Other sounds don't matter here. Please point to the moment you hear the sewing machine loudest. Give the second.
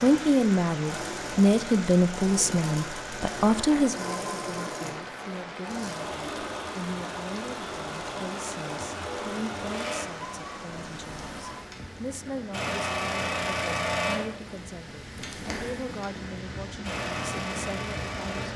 14 s.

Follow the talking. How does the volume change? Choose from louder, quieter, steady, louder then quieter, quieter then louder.
quieter.